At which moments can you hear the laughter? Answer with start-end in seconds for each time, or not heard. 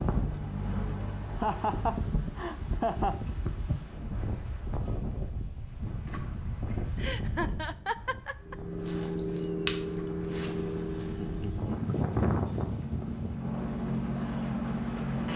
1.2-3.2, 7.0-8.6, 11.2-11.7.